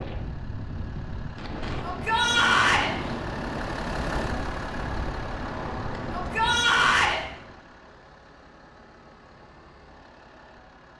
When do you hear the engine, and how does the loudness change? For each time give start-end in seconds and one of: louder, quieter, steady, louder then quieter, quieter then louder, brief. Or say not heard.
0.0-10.9 louder then quieter.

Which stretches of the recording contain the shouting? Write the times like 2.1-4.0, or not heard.
1.8-2.9, 6.1-7.2.